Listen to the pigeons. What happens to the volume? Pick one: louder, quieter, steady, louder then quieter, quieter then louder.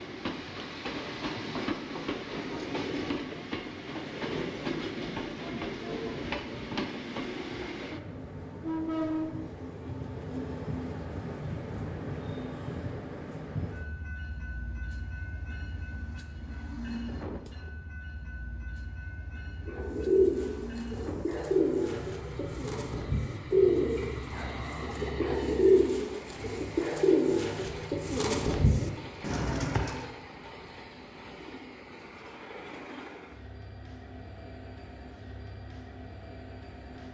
steady.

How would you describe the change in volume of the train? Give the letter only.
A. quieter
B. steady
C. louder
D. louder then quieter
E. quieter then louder
A.